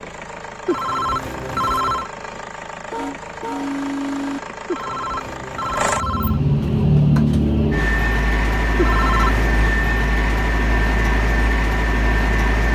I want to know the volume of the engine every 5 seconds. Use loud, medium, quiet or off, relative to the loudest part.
quiet, loud, loud.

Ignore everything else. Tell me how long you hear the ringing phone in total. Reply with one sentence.
The ringing phone can be heard for 4 seconds in total.